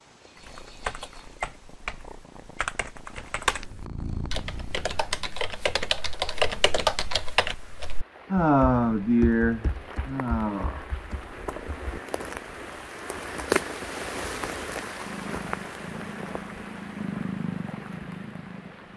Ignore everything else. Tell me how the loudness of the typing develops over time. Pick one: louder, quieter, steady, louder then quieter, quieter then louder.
louder then quieter.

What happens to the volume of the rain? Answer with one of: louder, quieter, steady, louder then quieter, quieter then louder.
louder then quieter.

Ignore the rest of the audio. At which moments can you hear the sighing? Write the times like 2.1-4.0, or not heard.
8.3-10.8.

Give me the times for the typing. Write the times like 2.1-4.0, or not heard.
0.3-12.0.